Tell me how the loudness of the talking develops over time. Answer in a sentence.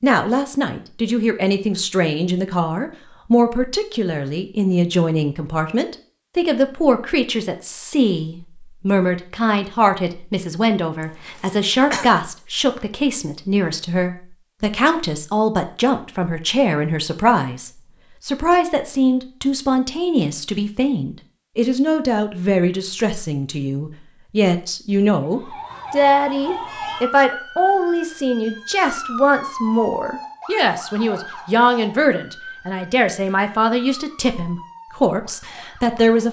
The volume of the talking stays about the same.